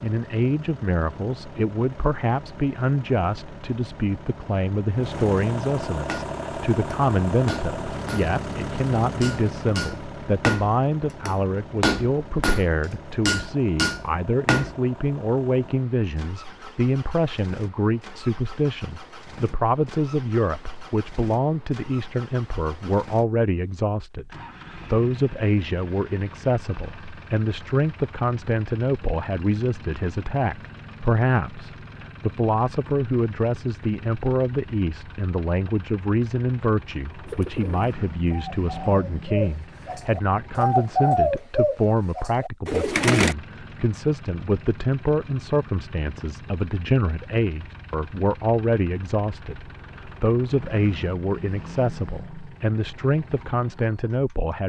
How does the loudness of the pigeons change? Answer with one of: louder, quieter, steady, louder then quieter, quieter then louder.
louder then quieter.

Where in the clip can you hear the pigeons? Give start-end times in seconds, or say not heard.
37.2-43.4.